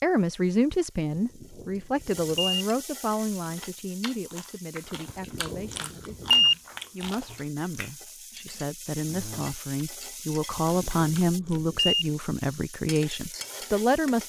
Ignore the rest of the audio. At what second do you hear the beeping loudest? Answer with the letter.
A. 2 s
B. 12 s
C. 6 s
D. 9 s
C.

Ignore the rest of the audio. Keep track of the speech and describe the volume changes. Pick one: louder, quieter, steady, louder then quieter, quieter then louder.
quieter then louder.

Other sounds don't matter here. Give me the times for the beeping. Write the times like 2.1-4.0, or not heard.
1.1-2.6, 5.0-6.5, 10.6-12.1.